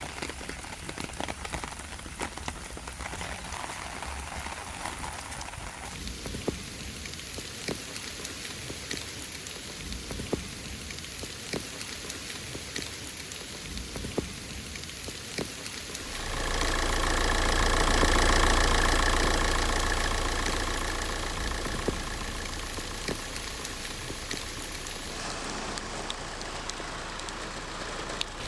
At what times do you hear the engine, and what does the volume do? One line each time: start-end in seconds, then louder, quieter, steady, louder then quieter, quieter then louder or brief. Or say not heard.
15.9-28.4 quieter.